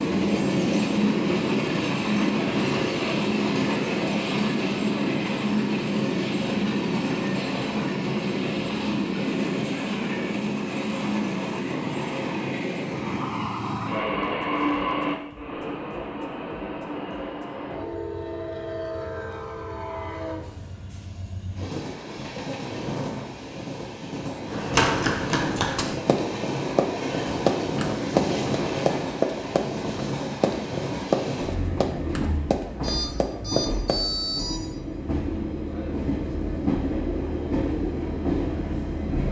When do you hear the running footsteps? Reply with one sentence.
You can hear the running footsteps from 24.5 to 34.2 s.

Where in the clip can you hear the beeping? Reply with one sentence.
The beeping can be heard from 32.8 to 34.6 s.